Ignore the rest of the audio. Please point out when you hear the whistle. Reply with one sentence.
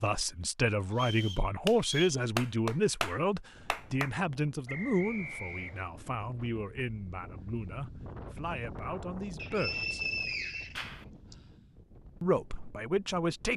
You can hear the whistle from 0.9 to 2.2 s, from 4.7 to 5.9 s and from 9.3 to 11.3 s.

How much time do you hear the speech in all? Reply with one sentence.
You can hear the speech for 11 seconds altogether.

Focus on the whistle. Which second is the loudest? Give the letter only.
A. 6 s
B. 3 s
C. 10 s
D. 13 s
C.